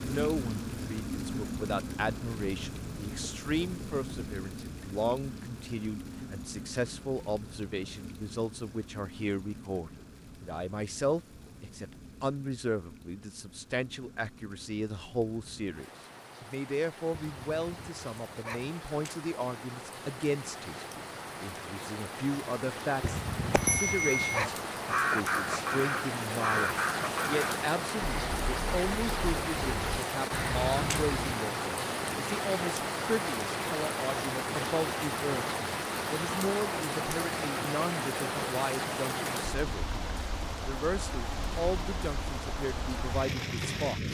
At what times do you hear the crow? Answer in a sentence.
You can hear the crow from 24.9 to 31.3 s.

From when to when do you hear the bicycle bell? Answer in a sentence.
The bicycle bell can be heard from 23.5 to 24.4 s.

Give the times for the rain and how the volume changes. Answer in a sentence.
You can hear the rain from 0.0 to 44.1 s, getting quieter then louder.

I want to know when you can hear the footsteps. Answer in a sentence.
The footsteps can't be heard in this clip.